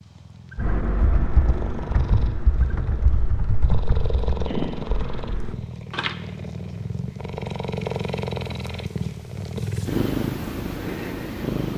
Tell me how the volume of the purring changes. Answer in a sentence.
The loudness of the purring goes up.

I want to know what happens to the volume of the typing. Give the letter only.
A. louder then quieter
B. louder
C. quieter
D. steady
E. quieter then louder
C.